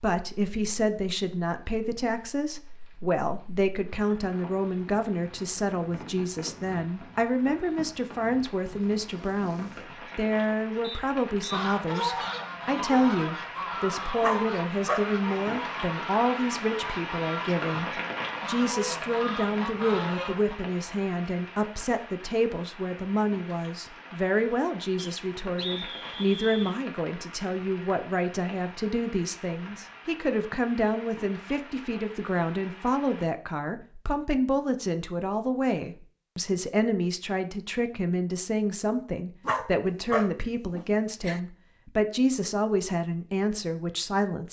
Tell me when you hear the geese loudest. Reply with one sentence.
The loudest moment of the geese is at 12 seconds.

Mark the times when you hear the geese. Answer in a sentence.
You can hear the geese from 11.5 to 20.6 s.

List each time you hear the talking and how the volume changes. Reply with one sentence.
The talking can be heard from 0.0 to 44.4 s, at a steady volume.